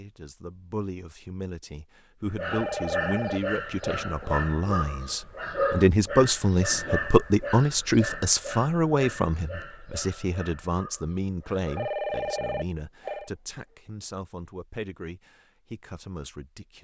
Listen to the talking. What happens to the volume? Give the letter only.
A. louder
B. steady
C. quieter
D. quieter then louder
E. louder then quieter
E.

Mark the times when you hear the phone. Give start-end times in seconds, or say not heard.
2.5-3.9, 11.8-13.3.